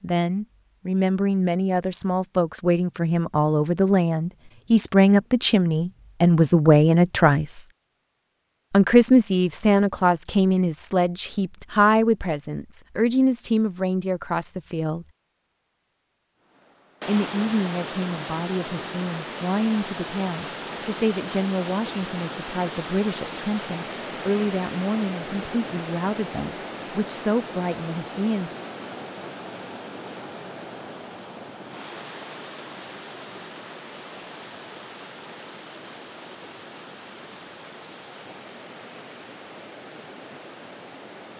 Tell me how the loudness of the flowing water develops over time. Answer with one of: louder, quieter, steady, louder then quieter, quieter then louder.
quieter.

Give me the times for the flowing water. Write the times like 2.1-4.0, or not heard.
16.6-41.3.